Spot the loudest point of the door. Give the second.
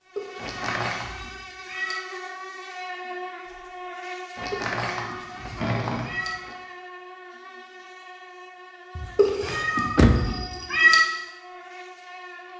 10 s.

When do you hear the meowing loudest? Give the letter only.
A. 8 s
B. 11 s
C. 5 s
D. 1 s
B.